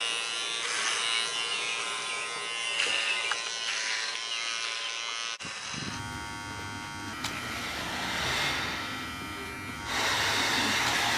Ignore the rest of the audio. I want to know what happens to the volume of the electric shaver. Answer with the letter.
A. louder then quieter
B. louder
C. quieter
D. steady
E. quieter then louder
C.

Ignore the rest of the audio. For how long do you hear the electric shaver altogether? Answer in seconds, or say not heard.
11 s.